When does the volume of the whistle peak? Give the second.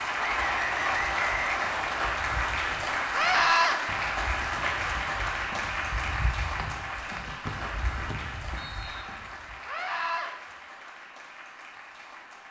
1 s.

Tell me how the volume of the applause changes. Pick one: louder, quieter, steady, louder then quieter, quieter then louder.
quieter.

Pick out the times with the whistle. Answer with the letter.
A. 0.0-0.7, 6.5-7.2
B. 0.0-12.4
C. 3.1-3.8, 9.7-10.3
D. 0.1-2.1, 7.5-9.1
D.